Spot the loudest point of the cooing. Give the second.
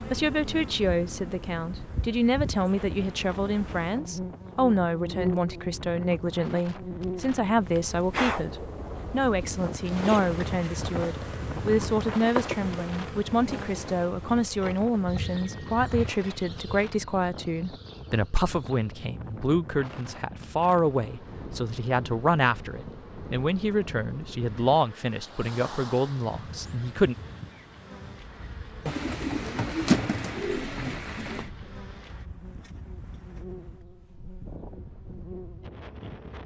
30 s.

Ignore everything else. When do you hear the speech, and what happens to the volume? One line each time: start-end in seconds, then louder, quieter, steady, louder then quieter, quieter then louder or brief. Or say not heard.
0.1-27.1 steady.